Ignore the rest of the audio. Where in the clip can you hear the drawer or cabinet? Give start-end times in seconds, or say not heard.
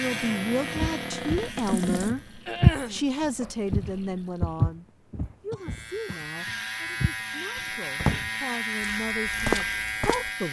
0.0-2.1, 7.5-8.3.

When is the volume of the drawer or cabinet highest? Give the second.
8 s.